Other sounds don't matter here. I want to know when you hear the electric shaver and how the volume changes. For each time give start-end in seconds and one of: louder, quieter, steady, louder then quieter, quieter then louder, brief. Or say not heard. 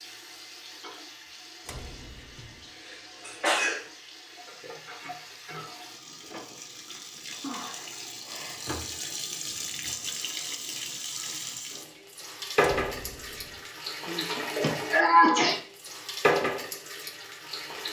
not heard.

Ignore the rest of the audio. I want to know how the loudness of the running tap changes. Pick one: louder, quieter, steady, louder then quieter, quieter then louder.
louder.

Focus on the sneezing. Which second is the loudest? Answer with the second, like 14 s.
15 s.